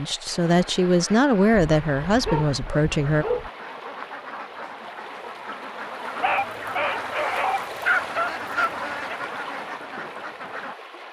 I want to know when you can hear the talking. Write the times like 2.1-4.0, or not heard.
0.0-3.2.